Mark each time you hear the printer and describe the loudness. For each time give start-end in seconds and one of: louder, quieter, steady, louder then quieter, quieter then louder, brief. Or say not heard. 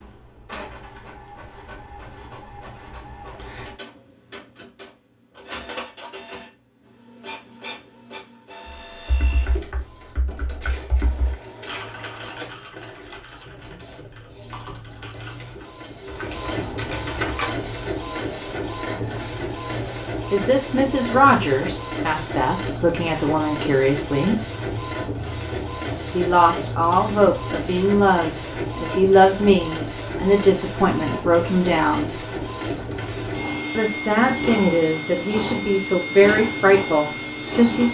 0.0-37.8 louder.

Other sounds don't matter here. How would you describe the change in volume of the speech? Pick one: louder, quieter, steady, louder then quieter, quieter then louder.
steady.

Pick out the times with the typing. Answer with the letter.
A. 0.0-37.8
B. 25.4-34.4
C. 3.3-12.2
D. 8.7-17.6
D.